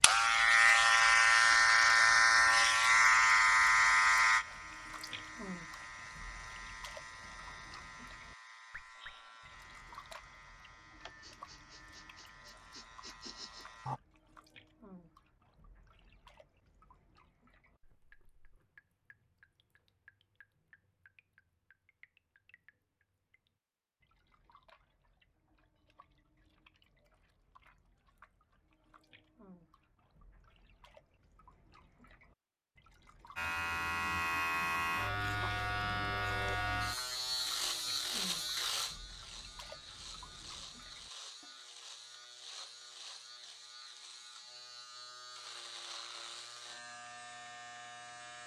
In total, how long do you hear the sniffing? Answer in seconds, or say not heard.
3 s.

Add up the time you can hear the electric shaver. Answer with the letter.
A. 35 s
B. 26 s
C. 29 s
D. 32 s
C.